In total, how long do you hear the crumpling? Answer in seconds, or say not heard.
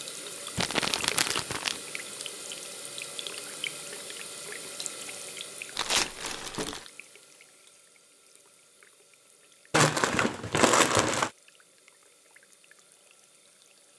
4 s.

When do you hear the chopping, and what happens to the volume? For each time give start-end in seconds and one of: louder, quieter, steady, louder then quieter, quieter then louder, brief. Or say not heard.
not heard.